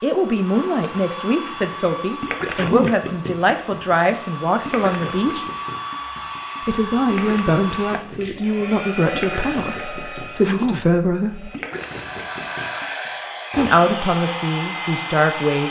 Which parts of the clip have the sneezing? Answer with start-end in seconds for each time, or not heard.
2.5-3.0, 10.4-10.8.